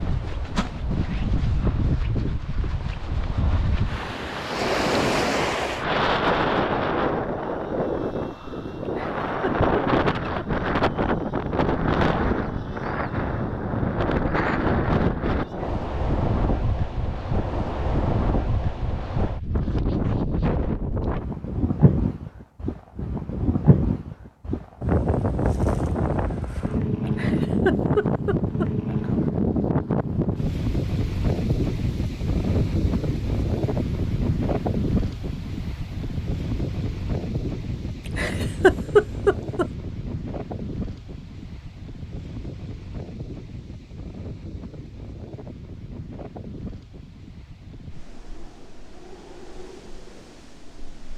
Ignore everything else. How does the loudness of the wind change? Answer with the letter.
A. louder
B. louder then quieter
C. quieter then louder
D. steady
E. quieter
E.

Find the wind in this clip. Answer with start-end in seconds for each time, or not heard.
0.0-51.1.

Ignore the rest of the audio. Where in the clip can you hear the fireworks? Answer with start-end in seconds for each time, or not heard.
not heard.